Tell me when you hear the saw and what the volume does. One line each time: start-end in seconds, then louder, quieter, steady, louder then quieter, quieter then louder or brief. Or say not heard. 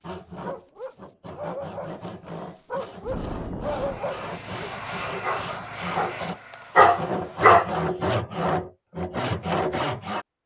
0.0-10.2 louder.